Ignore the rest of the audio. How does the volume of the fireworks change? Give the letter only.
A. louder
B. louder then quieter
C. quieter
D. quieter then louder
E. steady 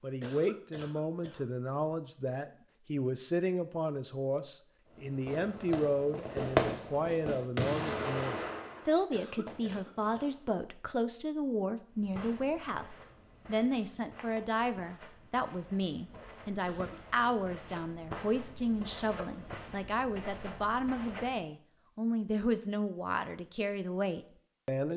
B.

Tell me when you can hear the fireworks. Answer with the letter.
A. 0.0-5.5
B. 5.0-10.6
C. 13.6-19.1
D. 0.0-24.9
B.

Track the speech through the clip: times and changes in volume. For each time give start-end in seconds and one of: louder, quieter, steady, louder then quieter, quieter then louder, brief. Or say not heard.
0.0-24.9 steady.